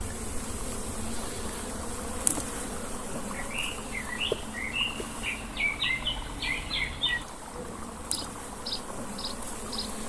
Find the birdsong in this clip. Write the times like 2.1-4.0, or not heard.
3.2-10.0.